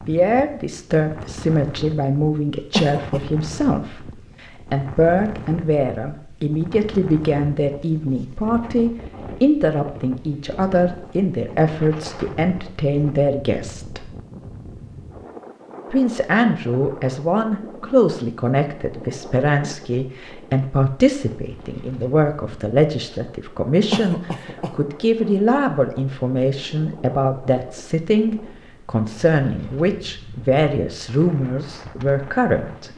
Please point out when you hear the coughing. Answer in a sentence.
You can hear the coughing from 2.7 to 3.2 s and from 23.9 to 24.8 s.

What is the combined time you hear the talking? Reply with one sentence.
You can hear the talking for 31 seconds altogether.